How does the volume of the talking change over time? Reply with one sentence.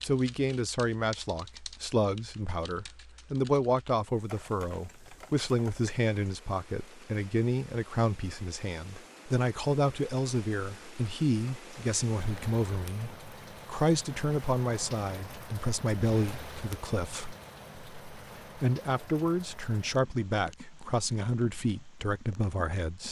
The volume of the talking stays about the same.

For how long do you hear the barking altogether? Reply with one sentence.
You can't hear the barking here.